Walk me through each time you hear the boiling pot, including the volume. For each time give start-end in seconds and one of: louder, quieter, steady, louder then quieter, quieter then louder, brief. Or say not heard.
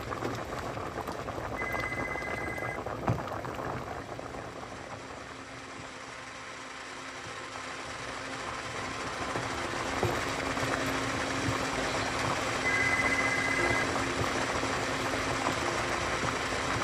0.0-16.7 quieter then louder.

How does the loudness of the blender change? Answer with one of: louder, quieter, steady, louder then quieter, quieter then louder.
louder.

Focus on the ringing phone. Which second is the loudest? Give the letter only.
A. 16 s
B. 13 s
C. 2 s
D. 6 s
B.